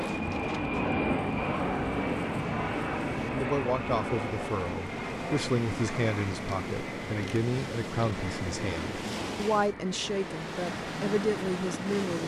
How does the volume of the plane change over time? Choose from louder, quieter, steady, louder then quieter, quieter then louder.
quieter.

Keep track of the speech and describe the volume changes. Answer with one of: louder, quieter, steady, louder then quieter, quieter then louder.
steady.